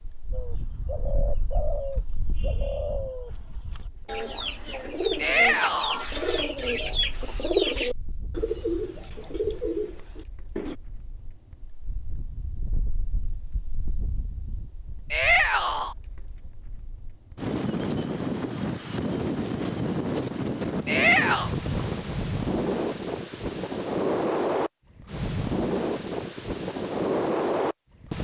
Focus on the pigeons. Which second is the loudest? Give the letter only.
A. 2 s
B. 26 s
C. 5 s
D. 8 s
D.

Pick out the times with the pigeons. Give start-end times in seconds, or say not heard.
0.3-10.8.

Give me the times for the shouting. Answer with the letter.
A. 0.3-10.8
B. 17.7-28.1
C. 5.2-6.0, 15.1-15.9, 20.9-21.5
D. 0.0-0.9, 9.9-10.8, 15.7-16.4
C.